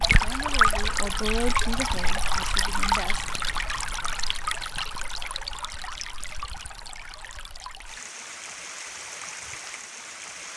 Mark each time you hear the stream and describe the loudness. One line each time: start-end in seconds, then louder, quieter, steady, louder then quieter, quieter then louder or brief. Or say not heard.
0.0-10.5 quieter.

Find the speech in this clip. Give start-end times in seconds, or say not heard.
0.0-3.2.